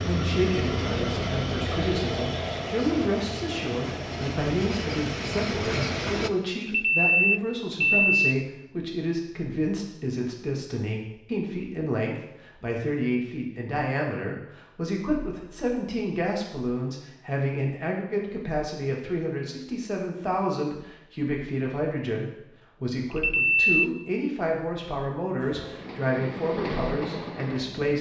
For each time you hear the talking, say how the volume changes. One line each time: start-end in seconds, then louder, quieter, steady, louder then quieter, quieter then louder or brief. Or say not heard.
0.0-27.9 steady.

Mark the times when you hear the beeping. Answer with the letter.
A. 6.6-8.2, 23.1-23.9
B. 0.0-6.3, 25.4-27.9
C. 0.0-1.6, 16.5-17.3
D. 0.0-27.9
A.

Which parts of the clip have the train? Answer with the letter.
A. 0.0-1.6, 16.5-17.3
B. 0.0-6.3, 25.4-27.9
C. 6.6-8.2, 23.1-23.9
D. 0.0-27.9
B.